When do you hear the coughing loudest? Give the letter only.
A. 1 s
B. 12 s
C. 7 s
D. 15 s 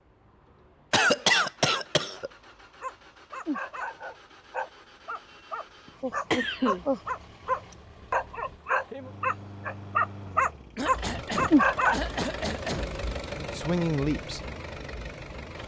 A.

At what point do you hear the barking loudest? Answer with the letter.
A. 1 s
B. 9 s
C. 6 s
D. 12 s
D.